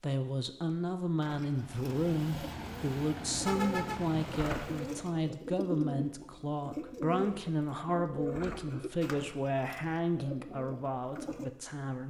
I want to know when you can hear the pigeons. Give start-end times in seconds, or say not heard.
1.2-11.5.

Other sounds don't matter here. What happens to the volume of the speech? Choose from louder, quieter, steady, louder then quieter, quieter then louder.
steady.